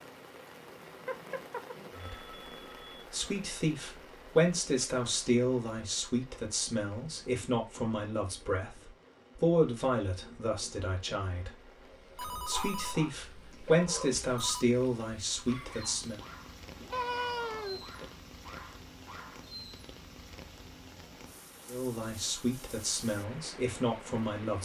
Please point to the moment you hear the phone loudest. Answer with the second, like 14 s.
17 s.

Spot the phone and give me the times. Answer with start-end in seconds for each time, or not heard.
1.1-3.0, 12.2-14.7, 16.9-18.1.